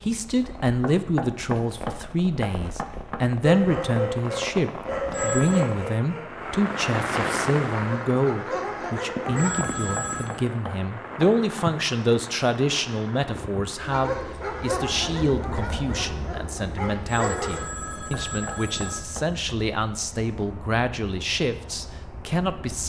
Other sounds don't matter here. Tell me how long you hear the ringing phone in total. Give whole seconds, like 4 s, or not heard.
4 s.